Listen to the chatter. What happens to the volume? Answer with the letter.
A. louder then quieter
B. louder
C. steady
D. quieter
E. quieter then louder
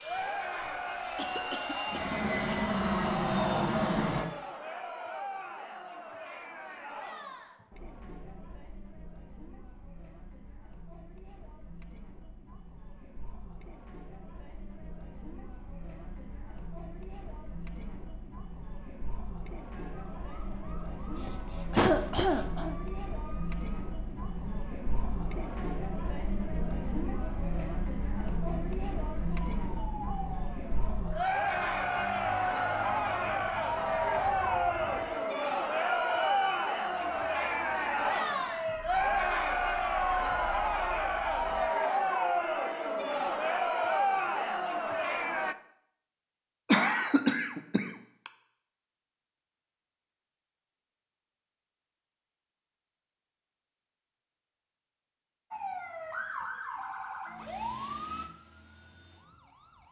E.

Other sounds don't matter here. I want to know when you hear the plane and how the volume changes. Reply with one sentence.
The plane can be heard from 0.0 to 4.2 s, getting louder.